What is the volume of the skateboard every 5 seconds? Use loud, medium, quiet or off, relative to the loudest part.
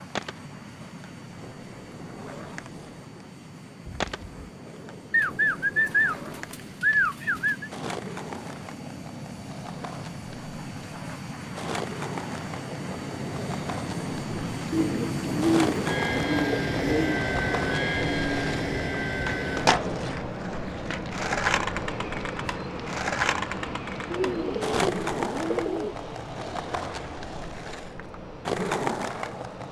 medium, medium, medium, loud, loud, loud.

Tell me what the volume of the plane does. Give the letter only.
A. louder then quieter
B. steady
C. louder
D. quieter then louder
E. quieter
A.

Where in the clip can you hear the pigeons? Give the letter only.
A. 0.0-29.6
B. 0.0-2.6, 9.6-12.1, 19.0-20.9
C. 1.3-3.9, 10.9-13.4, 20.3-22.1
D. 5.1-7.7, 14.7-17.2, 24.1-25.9
D.